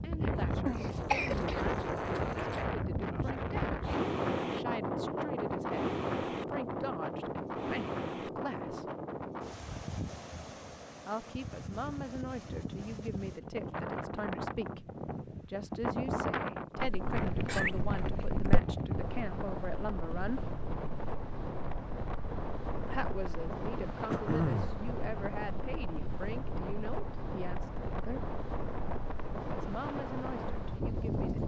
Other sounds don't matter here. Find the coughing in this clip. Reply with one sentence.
You can hear the coughing from 0.7 to 1.7 s, from 16.8 to 18.6 s and from 24.1 to 24.8 s.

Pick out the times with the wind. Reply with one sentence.
You can hear the wind from 0.0 to 31.4 s.